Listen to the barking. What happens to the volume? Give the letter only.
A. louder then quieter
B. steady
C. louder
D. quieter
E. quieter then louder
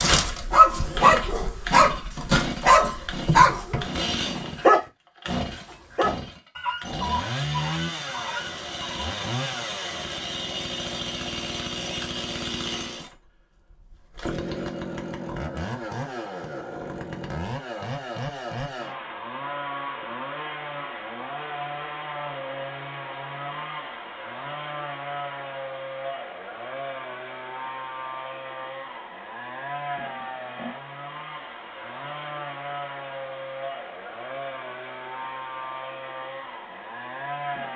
D.